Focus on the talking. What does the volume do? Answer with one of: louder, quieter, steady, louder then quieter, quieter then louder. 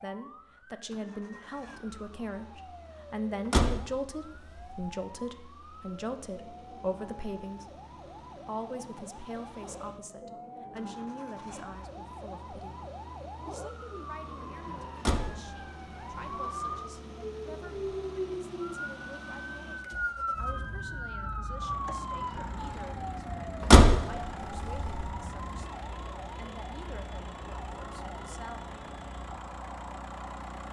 quieter.